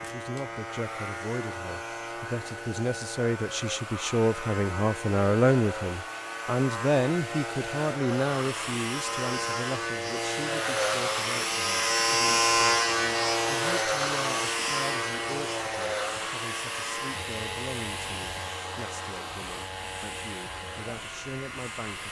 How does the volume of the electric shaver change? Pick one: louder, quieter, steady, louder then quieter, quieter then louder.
louder then quieter.